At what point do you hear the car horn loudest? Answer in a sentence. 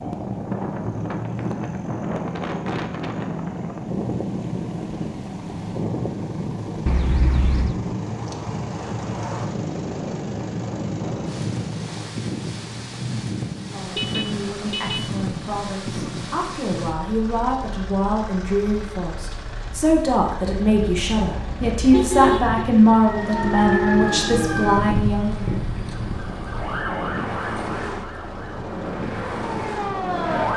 The volume of the car horn peaks at 22 seconds.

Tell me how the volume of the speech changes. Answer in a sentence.
The volume of the speech goes up.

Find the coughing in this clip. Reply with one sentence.
The coughing can't be heard in this clip.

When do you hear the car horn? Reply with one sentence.
You can hear the car horn from 6.8 to 7.8 s, from 13.8 to 15.1 s and from 20.4 to 22.6 s.